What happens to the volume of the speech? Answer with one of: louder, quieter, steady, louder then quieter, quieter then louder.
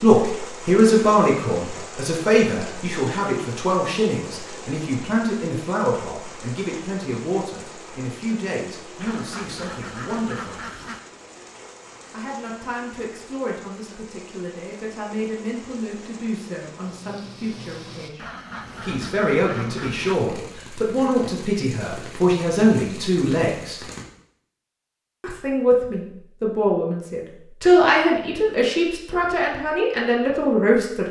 quieter then louder.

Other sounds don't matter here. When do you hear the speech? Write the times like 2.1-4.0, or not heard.
0.0-10.6, 12.1-23.8, 25.2-31.0.